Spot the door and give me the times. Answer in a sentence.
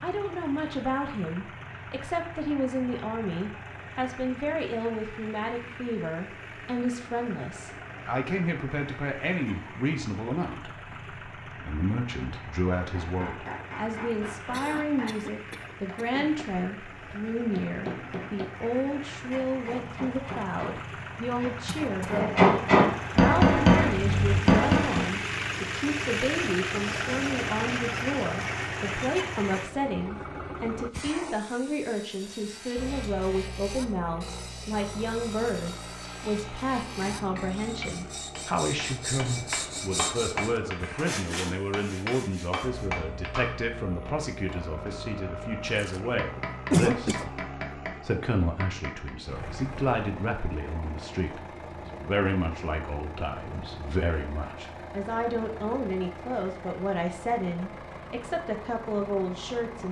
The door can't be heard in this clip.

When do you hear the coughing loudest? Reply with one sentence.
The volume of the coughing peaks at 47 seconds.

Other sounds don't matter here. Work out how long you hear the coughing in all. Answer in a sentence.
The coughing can be heard for 4 seconds in total.